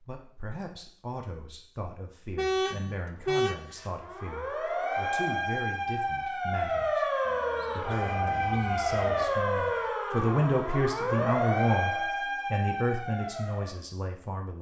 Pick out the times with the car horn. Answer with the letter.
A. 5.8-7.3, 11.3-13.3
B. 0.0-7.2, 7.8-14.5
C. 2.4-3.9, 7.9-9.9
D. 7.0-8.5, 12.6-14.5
C.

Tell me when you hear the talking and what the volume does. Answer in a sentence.
The talking can be heard from 0.0 to 7.2 s, at a steady volume; and from 7.8 to 14.5 s, getting louder then quieter.